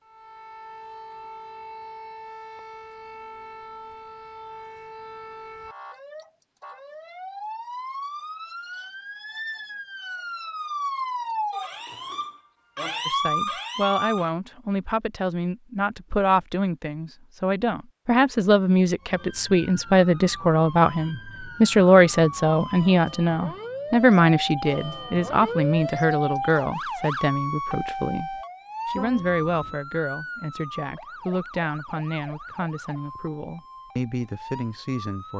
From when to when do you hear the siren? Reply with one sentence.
The siren can be heard from 0.0 to 14.3 s and from 19.0 to 35.3 s.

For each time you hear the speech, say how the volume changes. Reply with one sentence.
You can hear the speech from 13.1 to 35.3 s, getting louder then quieter.